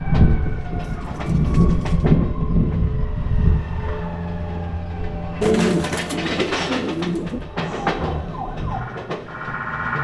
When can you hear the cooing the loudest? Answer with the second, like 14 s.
6 s.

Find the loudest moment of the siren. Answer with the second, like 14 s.
2 s.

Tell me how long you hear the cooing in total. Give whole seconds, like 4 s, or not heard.
4 s.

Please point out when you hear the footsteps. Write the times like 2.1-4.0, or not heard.
not heard.